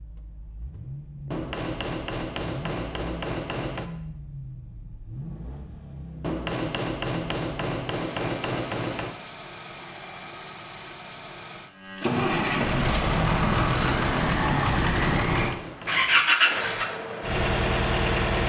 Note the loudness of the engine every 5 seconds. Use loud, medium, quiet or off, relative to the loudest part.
quiet, quiet, loud, loud.